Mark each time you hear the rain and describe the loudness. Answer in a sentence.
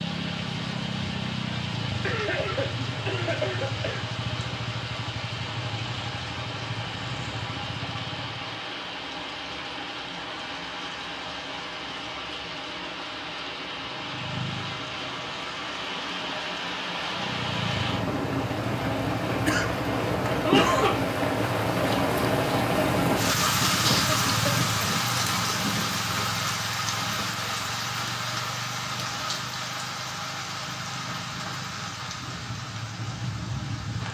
The rain can be heard from 0.0 to 34.0 s, getting louder then quieter.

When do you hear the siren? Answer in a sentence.
The siren can't be heard in this clip.